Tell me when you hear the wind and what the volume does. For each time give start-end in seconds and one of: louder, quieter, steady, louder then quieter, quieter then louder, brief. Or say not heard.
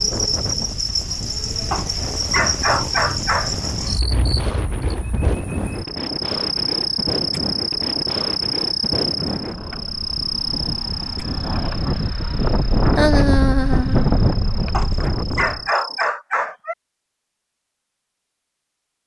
0.0-15.7 louder.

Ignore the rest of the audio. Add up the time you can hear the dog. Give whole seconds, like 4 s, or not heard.
4 s.